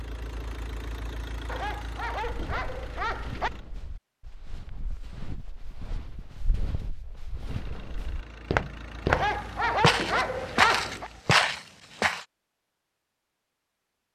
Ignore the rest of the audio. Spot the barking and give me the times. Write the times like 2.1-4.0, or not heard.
1.4-3.5, 9.1-11.1.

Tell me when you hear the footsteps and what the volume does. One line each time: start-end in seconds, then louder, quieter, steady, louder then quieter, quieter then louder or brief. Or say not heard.
2.2-12.2 louder.